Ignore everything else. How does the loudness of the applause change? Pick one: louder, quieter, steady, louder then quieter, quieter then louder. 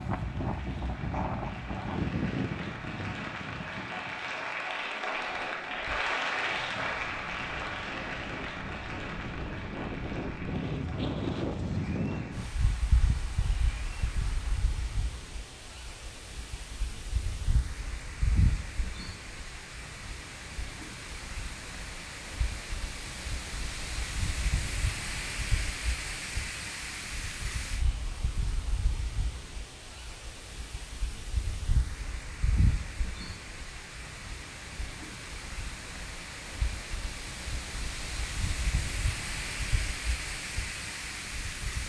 louder then quieter.